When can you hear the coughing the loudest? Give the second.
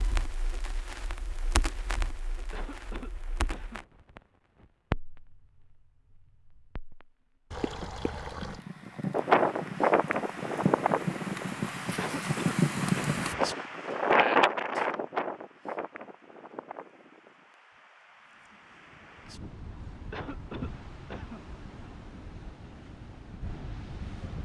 12 s.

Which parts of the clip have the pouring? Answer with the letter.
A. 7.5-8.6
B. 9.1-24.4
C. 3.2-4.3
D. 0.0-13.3
A.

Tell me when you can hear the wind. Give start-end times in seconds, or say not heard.
9.1-24.4.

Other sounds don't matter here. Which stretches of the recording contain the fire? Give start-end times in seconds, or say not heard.
0.0-13.3.